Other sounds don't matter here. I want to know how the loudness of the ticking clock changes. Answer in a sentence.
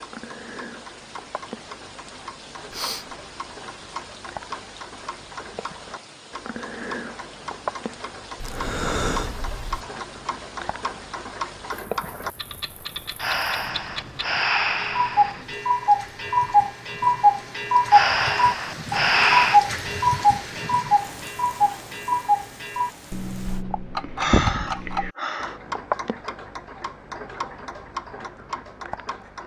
The volume of the ticking clock goes up, then down.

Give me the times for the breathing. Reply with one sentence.
The breathing can be heard from 2.7 to 3.1 s, from 8.4 to 9.8 s, from 13.2 to 15.4 s, from 17.9 to 19.6 s and from 24.1 to 25.6 s.